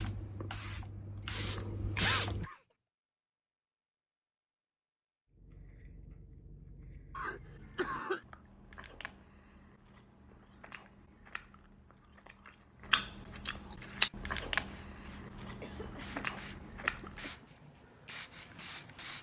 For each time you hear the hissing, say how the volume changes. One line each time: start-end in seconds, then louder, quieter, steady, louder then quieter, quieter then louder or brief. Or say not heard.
0.0-2.5 brief
13.9-19.1 louder.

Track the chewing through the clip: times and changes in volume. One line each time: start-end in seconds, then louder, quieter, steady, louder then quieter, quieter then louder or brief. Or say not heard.
5.3-17.4 louder then quieter.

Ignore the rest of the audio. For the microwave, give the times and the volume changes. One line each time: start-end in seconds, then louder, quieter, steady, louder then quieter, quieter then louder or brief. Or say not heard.
not heard.